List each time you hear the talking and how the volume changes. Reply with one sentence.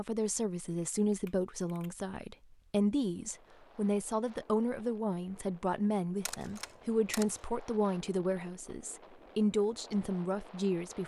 You can hear the talking from 0.0 to 11.0 s, at a steady volume.